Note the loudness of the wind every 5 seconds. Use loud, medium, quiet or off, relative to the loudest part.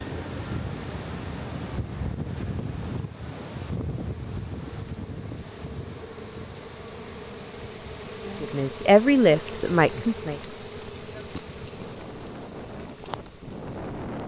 loud, medium, medium.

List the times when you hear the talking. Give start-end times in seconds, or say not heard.
8.4-10.4.